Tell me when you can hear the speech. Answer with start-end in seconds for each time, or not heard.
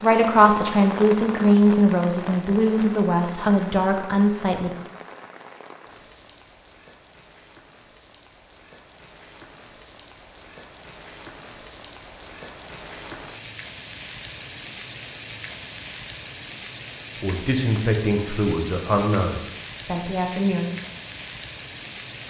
0.0-4.7, 17.2-20.7.